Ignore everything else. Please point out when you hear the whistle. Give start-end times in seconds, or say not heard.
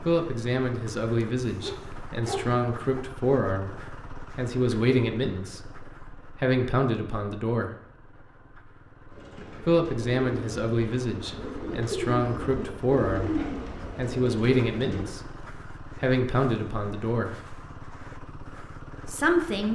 not heard.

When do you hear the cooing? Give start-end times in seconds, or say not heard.
9.1-15.1.